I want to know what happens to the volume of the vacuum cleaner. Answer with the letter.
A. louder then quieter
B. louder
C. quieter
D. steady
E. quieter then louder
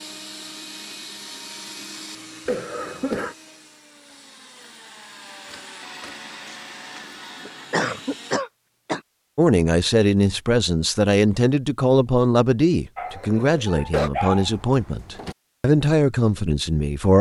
E.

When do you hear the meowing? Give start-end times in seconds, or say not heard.
not heard.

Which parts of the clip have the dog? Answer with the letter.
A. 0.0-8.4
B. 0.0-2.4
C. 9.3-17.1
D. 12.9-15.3
D.